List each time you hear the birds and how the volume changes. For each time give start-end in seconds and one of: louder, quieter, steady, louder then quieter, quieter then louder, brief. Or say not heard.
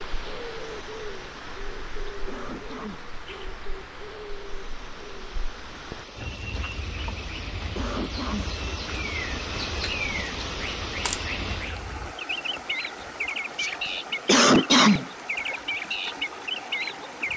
0.0-17.3 louder.